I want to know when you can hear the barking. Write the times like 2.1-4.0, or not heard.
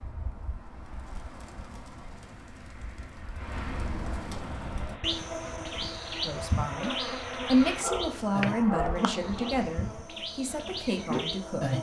7.7-9.6.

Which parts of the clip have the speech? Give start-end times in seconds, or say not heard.
6.2-11.7.